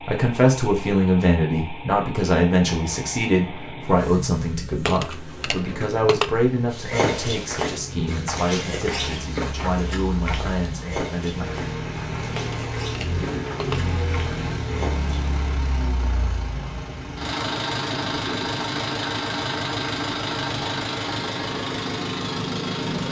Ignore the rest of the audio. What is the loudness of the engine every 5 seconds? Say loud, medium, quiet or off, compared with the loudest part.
medium, quiet, loud, loud, loud.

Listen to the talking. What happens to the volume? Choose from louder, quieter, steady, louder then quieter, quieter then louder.
quieter.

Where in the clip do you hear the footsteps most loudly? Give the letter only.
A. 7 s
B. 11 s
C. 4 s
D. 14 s
A.